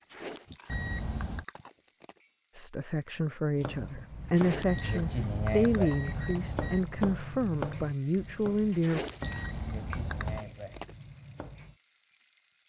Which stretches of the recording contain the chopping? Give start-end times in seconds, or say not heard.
3.5-11.8.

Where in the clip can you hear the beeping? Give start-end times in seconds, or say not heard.
0.7-1.4, 4.7-6.8, 9.2-10.4.